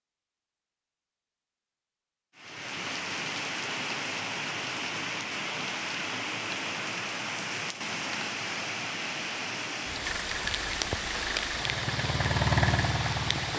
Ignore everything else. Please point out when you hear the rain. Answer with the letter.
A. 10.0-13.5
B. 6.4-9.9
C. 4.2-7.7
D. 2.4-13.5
D.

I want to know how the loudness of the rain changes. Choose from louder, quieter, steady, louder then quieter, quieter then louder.
steady.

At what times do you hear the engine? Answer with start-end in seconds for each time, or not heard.
10.0-13.5.